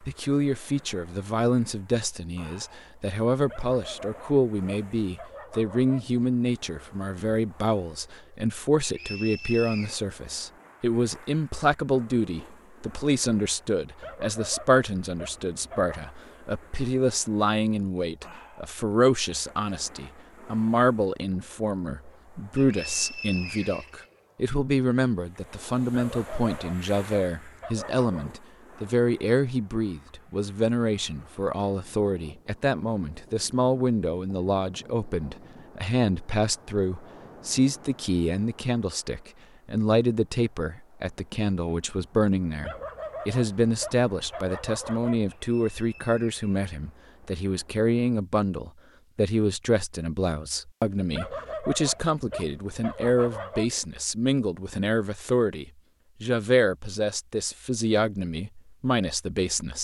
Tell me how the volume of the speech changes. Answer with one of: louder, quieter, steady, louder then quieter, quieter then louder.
steady.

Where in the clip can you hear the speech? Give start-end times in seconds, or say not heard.
0.0-59.7.